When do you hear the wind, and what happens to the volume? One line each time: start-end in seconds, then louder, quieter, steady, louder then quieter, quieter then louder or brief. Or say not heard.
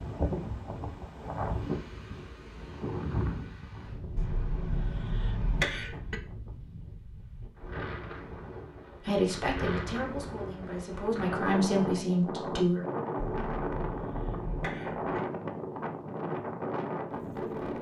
0.0-17.7 quieter then louder.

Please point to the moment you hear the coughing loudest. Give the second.
6 s.